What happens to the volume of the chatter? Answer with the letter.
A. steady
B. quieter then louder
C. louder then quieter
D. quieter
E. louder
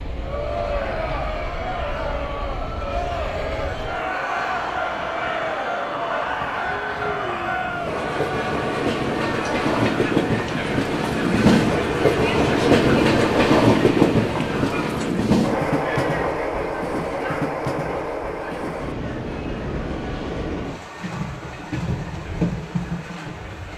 D.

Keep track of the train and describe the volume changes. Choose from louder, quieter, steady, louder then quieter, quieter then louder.
louder then quieter.